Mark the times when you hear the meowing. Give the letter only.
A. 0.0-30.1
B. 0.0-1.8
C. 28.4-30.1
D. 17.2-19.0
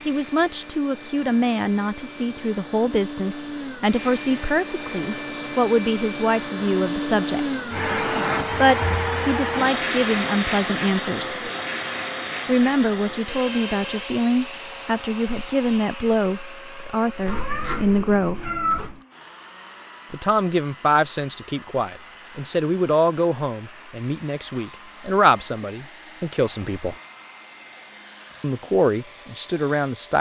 D.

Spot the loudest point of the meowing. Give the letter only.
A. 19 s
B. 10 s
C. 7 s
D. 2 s
A.